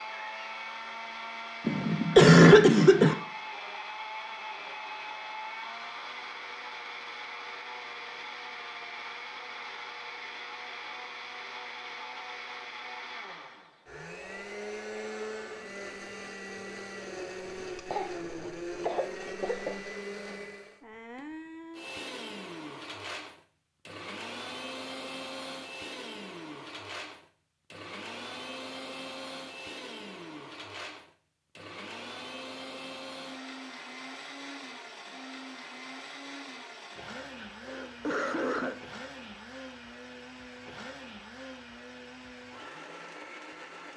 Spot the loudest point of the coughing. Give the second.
2 s.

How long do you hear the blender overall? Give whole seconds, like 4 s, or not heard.
44 s.